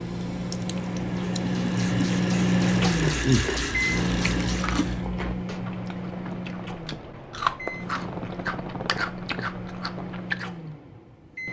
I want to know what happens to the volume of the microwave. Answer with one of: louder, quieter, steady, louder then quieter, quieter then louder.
quieter.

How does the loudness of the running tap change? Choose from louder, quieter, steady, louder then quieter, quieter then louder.
louder.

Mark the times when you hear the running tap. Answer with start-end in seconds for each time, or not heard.
0.0-5.0.